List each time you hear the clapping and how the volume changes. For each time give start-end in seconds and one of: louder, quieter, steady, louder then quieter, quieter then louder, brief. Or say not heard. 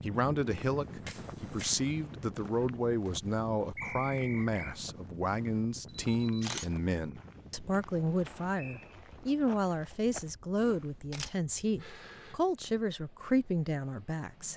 not heard.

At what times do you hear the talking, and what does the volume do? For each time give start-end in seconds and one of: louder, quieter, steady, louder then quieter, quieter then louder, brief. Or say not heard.
0.0-14.5 steady.